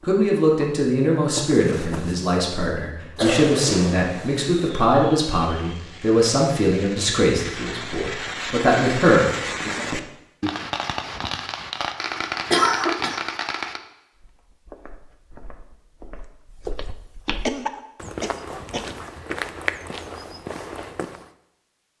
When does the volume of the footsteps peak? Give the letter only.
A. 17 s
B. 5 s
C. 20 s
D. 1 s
C.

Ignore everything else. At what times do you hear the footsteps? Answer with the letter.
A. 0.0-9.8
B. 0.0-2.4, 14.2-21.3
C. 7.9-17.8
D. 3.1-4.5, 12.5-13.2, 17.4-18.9
B.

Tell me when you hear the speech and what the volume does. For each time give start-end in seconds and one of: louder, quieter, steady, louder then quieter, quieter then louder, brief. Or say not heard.
0.0-9.8 steady.